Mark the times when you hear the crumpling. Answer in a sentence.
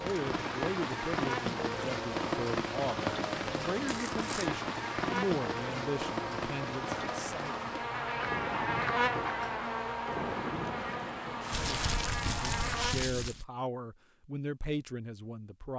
The crumpling can be heard from 3.9 to 4.5 s and from 11.5 to 13.4 s.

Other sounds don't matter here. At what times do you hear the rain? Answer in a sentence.
The rain can be heard from 0.0 to 11.9 s.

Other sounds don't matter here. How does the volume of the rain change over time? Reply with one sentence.
The volume of the rain goes down.